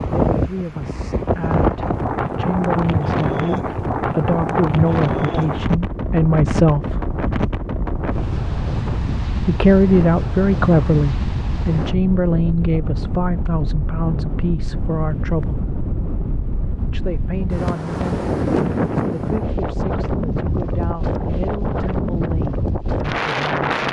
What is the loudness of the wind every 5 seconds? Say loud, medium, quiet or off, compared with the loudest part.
loud, loud, medium, loud, loud.